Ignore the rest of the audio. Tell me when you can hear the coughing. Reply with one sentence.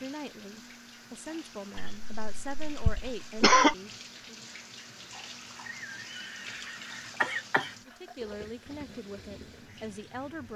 You can hear the coughing from 1.8 to 3.8 s and from 5.7 to 7.7 s.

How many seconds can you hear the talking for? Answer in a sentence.
You can hear the talking for 7 seconds altogether.